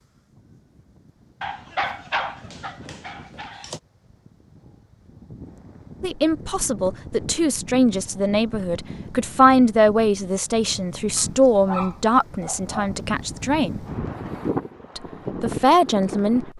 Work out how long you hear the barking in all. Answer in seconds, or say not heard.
4 s.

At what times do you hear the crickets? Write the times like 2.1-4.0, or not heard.
not heard.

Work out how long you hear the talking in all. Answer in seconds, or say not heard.
9 s.